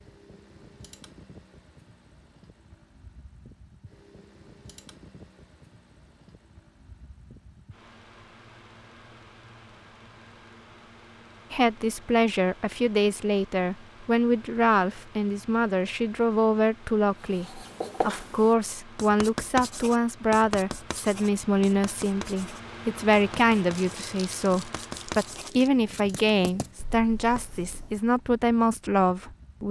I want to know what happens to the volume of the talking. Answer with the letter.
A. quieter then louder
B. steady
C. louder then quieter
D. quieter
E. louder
B.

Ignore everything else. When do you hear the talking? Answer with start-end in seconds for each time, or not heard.
11.5-29.6.